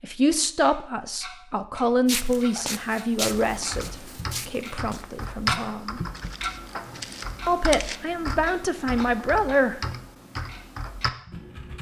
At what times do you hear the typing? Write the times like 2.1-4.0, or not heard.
3.3-11.7.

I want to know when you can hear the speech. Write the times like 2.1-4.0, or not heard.
0.0-6.0, 7.5-9.8.